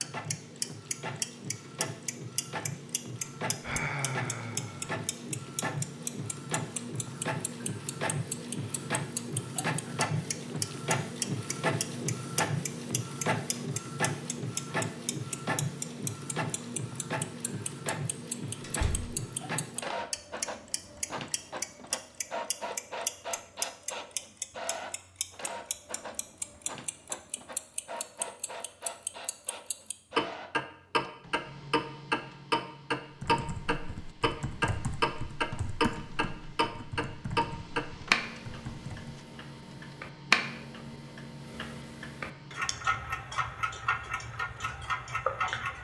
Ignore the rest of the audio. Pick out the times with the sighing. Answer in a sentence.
The sighing can be heard from 3.6 to 5.0 s.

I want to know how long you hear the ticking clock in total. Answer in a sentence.
The ticking clock can be heard for 46 seconds in total.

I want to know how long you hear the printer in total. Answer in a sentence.
The printer can be heard for 46 seconds in total.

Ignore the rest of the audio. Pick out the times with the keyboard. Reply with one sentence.
You can hear the keyboard from 33.1 to 39.1 s.